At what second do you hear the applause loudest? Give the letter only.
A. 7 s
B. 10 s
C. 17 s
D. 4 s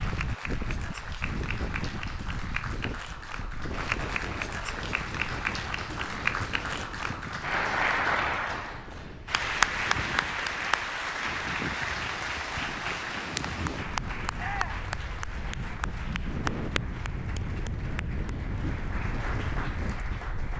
B.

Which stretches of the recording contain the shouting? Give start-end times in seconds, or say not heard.
14.3-14.9.